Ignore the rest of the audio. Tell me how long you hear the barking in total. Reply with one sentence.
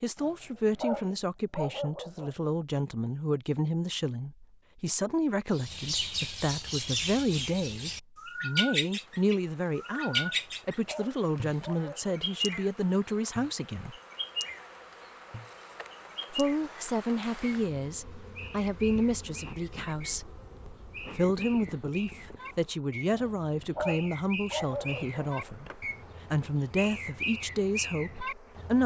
You can hear the barking for 7 seconds altogether.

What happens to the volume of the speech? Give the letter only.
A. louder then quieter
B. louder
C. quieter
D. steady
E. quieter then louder
D.